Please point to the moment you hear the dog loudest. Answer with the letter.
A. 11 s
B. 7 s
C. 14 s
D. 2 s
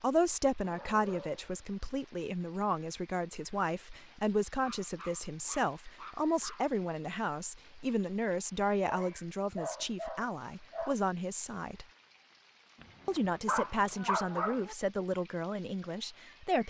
C.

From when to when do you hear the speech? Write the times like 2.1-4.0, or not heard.
0.0-11.8, 13.1-16.6.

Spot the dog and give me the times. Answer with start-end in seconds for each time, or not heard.
0.6-1.9, 4.6-6.7, 8.8-10.9, 12.8-14.8.